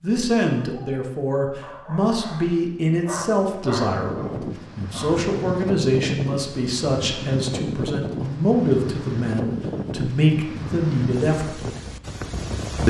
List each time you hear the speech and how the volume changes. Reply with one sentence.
The speech can be heard from 0.0 to 11.7 s, at a steady volume.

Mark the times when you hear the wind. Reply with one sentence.
You can hear the wind from 2.8 to 12.8 s.